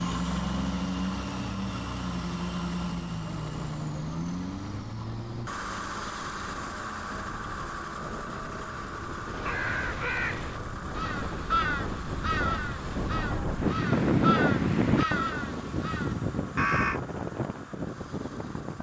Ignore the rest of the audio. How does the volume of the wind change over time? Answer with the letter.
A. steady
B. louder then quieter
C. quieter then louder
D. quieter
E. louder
B.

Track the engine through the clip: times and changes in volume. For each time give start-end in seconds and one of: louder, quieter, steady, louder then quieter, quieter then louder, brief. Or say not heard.
0.0-18.7 quieter.